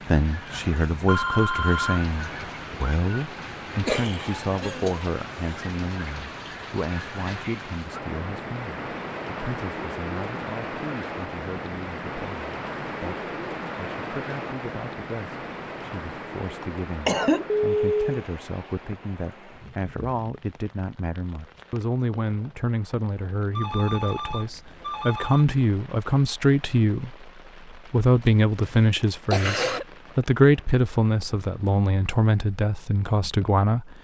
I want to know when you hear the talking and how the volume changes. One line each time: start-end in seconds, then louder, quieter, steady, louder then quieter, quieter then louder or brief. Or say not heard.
0.1-33.9 quieter then louder.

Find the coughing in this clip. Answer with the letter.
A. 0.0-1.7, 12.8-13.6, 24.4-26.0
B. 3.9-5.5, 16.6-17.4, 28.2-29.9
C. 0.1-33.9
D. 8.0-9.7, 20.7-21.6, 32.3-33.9
B.